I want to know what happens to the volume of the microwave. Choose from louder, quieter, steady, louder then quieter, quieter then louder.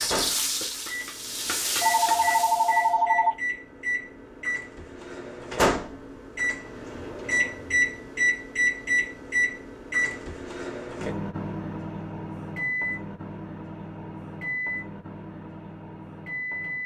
louder then quieter.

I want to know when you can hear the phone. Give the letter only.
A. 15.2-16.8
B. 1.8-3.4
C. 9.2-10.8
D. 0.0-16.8
B.